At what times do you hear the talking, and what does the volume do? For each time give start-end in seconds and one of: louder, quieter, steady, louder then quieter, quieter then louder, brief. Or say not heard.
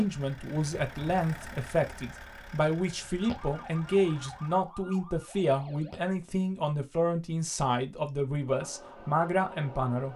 0.0-10.1 steady.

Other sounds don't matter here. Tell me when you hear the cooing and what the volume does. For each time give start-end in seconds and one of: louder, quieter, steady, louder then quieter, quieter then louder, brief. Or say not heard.
not heard.